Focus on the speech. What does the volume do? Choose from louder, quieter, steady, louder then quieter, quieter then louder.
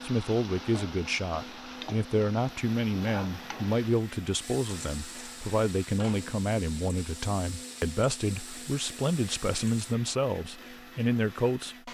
steady.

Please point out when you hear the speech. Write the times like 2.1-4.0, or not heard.
0.0-11.8.